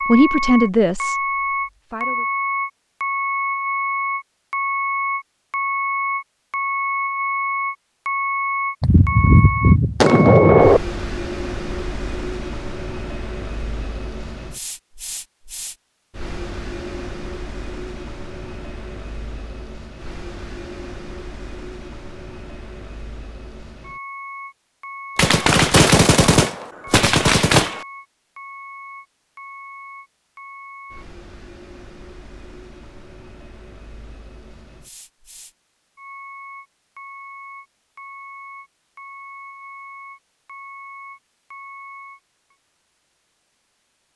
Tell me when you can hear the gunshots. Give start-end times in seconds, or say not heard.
8.8-10.8, 25.1-27.9.